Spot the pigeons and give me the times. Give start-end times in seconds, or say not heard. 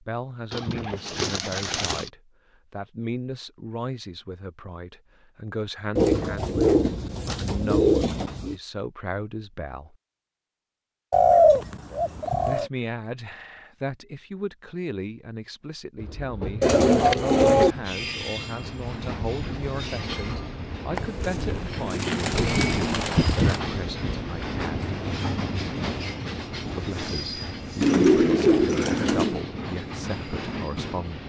0.5-2.1, 6.0-8.6, 11.1-12.7, 16.6-17.8, 20.9-23.6, 27.8-29.4.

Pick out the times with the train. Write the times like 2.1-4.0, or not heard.
15.9-31.2.